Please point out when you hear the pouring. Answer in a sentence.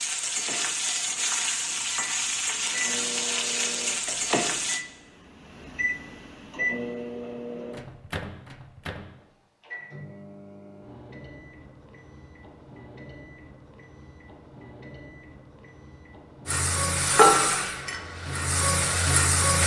You can't hear the pouring here.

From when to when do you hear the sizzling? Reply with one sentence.
You can hear the sizzling from 0.0 to 4.8 s and from 16.4 to 19.6 s.